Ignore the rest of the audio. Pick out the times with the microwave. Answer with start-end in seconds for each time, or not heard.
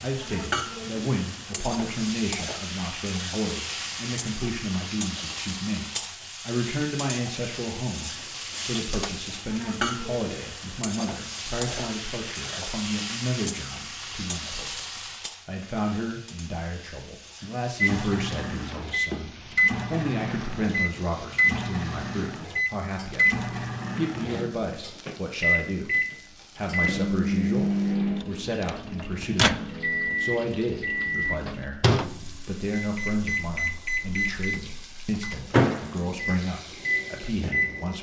17.8-37.9.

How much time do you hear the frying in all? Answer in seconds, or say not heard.
38 s.